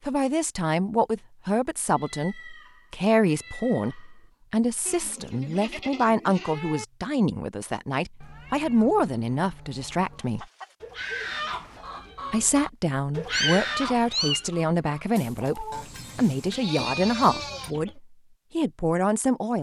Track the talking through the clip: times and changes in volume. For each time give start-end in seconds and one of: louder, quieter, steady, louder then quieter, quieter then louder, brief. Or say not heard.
0.1-10.4 steady
12.3-19.5 steady.